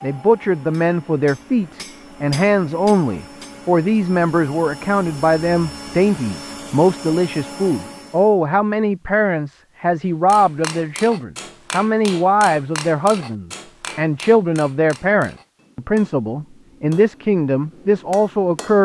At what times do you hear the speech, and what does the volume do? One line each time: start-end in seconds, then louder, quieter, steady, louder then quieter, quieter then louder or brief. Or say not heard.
0.0-18.8 steady.